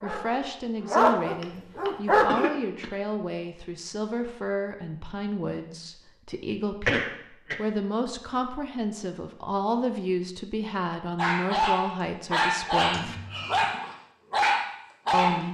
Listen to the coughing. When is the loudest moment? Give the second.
7 s.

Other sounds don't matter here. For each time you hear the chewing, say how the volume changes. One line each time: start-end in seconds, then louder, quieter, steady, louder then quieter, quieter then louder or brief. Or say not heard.
not heard.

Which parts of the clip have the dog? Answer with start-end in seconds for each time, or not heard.
0.0-2.5, 11.2-15.4.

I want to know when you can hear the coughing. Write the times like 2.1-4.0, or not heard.
1.3-2.9, 6.8-7.6, 12.9-13.7.